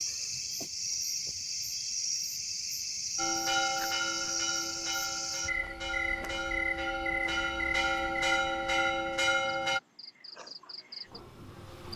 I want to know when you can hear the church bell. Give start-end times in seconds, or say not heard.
3.1-9.8.